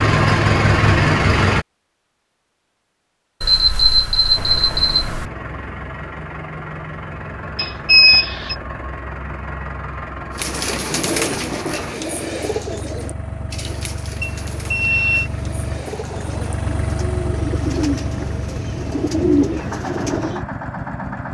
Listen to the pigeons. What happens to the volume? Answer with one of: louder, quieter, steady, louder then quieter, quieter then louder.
quieter then louder.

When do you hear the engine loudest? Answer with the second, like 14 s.
1 s.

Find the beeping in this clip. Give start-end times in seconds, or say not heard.
3.4-5.2, 7.5-8.6, 14.2-15.3.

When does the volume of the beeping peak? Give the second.
8 s.